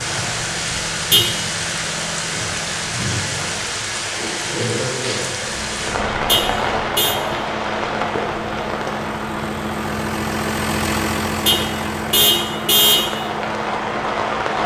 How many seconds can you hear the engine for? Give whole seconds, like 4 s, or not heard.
13 s.